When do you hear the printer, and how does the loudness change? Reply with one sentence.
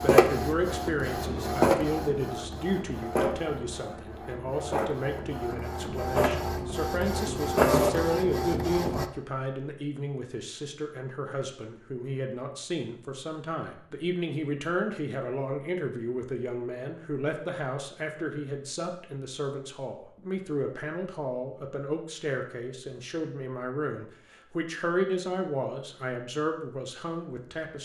You can hear the printer from 0.0 to 9.1 s, getting quieter then louder.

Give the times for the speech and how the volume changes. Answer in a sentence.
You can hear the speech from 0.0 to 27.7 s, at a steady volume.